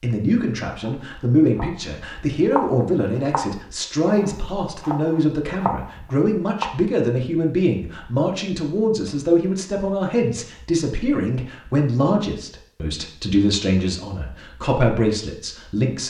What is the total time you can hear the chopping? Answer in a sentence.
You can hear the chopping for 6 seconds altogether.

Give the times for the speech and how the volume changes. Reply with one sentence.
The speech can be heard from 0.0 to 16.0 s, at a steady volume.